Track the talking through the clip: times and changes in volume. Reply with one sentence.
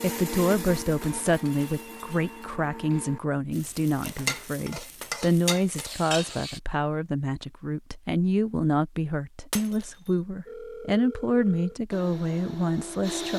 The talking can be heard from 0.0 to 13.3 s, at a steady volume.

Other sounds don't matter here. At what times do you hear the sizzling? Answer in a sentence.
The sizzling can be heard from 3.5 to 6.6 s.